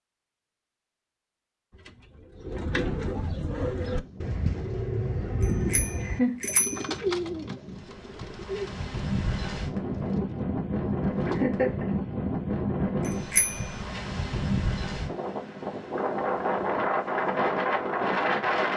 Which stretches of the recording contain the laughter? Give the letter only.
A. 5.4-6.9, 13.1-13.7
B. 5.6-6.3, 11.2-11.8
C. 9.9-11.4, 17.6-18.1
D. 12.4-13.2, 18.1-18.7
B.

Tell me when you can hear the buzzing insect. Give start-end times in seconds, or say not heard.
not heard.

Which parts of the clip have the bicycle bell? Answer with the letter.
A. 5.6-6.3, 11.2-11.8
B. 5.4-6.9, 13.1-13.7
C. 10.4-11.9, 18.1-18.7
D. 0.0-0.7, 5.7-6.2
B.